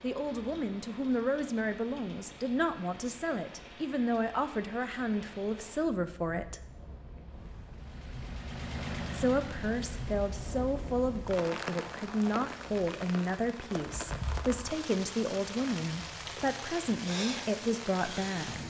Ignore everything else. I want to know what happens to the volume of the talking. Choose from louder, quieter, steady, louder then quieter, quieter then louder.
steady.